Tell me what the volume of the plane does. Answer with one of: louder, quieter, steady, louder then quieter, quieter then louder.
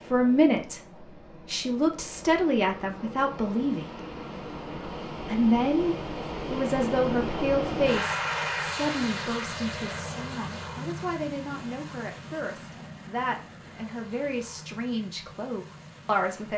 louder then quieter.